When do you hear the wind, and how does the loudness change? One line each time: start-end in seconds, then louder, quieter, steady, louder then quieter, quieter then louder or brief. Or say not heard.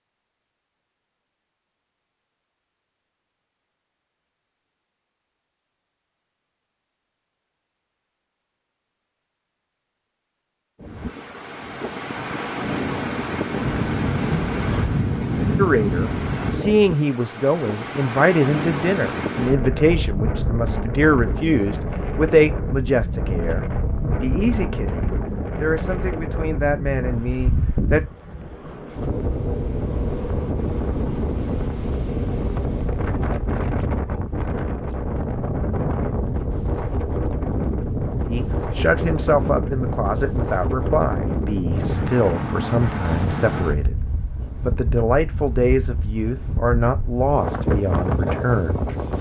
10.8-49.1 steady.